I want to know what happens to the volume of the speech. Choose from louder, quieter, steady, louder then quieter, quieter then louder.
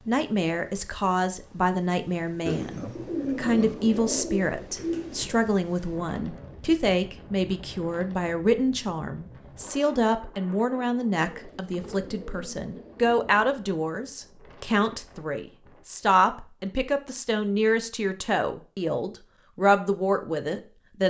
steady.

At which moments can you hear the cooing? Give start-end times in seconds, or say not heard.
2.5-5.4, 11.2-13.6.